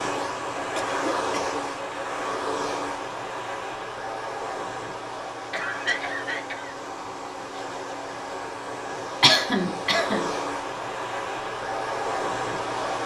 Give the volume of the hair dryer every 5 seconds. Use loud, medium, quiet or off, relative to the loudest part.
loud, medium, loud.